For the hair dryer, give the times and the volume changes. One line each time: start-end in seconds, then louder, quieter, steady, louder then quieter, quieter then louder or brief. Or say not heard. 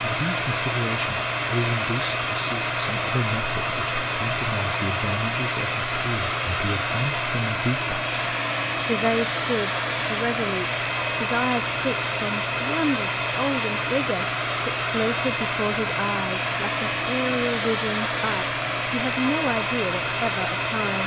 0.0-21.0 steady.